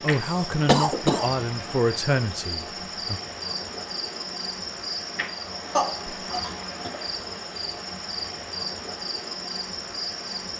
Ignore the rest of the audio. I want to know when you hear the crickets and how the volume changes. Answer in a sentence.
You can hear the crickets from 0.0 to 10.5 s, at a steady volume.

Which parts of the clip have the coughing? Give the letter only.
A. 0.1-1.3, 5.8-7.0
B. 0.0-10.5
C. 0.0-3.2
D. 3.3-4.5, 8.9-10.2
A.